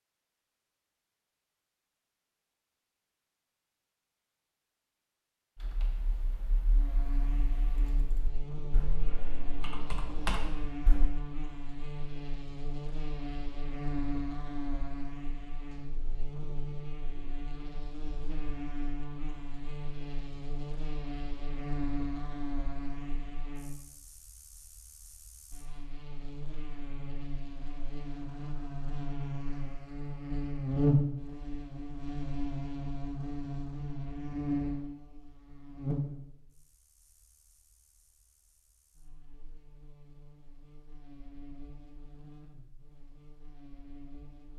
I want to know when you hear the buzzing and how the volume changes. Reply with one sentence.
The buzzing can be heard from 6.7 to 44.5 s, getting louder then quieter.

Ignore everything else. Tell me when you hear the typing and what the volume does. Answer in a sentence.
You can hear the typing from 5.6 to 11.2 s, getting louder.